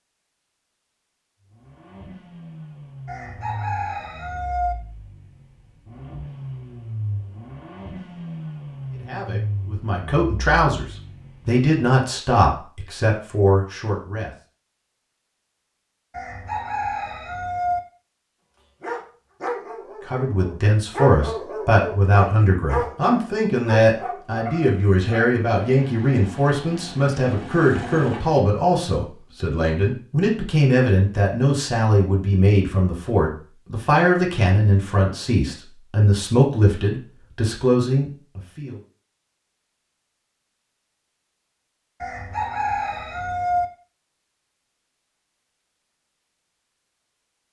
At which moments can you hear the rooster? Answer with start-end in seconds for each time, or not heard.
3.0-4.8, 16.1-17.8, 42.0-43.6.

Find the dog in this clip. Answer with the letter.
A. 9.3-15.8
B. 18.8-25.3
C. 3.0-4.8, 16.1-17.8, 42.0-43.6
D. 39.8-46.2
B.